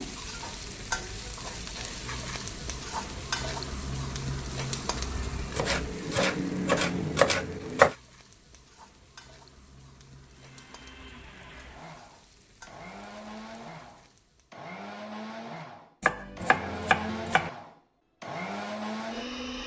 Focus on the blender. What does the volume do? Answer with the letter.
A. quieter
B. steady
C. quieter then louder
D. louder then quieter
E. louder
E.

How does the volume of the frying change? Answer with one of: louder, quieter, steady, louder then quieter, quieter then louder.
quieter.